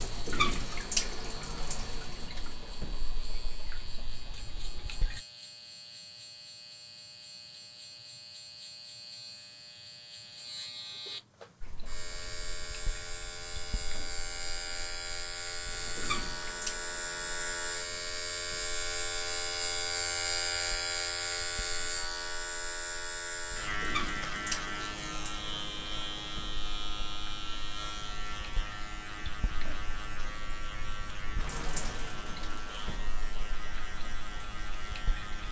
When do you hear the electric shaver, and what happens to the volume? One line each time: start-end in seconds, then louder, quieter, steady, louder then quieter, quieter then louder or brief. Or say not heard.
0.0-35.4 louder then quieter.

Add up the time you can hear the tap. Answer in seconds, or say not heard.
29 s.